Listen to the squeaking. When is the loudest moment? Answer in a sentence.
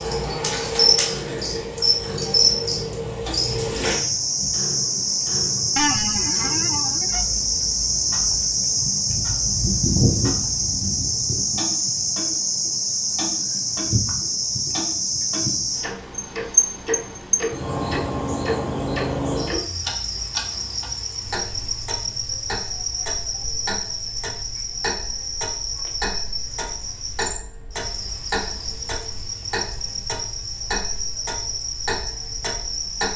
The loudest moment of the squeaking is at 6 seconds.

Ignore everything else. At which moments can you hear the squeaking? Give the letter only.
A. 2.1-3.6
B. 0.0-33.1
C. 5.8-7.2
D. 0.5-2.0
C.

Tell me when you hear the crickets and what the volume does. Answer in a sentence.
You can hear the crickets from 0.0 to 33.1 s, getting quieter.